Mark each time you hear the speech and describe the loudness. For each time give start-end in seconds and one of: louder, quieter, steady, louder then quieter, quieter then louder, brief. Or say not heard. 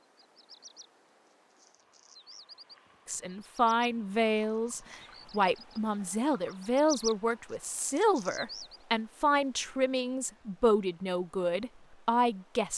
3.0-12.7 steady.